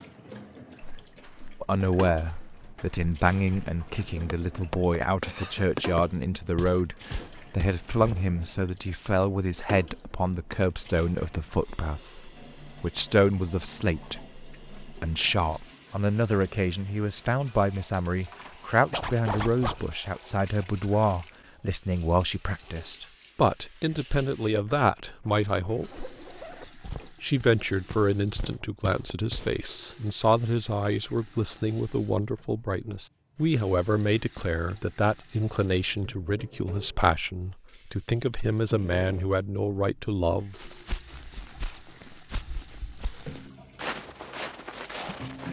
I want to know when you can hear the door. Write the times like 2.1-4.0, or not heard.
not heard.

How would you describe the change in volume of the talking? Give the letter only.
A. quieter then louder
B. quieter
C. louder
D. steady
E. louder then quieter
D.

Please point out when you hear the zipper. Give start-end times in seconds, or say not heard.
18.9-19.9, 25.2-26.8.